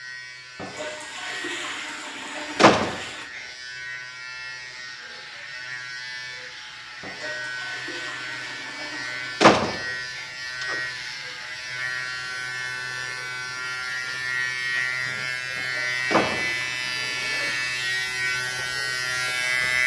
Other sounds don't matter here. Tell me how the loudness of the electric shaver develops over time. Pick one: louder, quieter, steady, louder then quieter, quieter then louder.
louder.